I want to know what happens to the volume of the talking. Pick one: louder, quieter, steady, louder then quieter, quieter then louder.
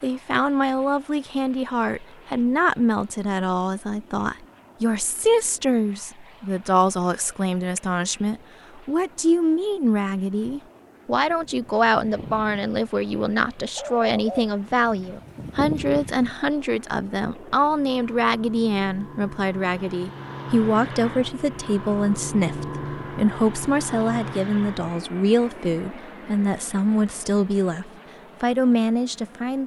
steady.